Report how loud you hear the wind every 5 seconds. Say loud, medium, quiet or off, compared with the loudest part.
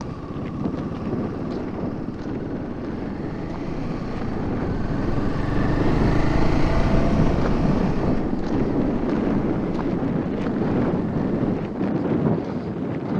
medium, loud, loud.